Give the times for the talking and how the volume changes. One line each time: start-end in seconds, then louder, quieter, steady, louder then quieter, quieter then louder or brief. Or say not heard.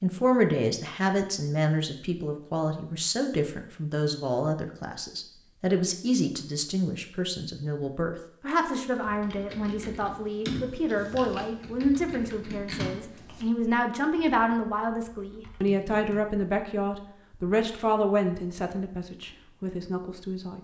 0.0-20.5 steady.